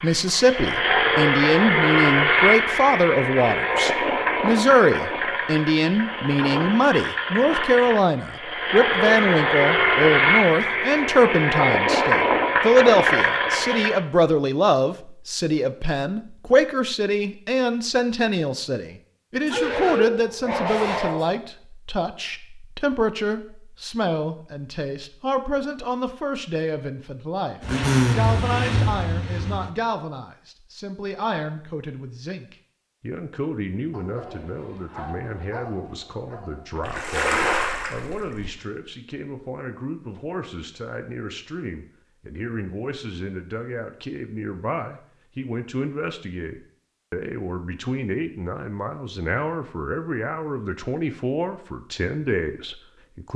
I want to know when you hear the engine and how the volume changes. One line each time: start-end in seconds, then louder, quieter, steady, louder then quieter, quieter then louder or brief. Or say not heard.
0.0-14.1 quieter then louder
27.6-29.7 brief.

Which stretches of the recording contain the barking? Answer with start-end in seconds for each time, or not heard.
19.4-21.4, 33.9-36.8.